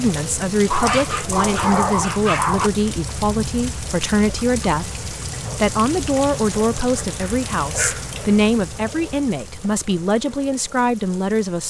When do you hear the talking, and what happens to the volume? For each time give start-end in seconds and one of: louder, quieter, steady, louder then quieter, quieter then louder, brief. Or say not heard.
0.0-11.6 steady.